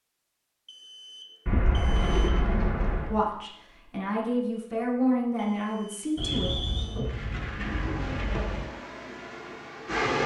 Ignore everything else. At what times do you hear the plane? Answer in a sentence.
The plane can be heard from 7.5 to 10.2 s.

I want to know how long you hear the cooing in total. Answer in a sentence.
The cooing can be heard for 4 seconds in total.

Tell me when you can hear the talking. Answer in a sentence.
The talking can be heard from 3.0 to 6.5 s.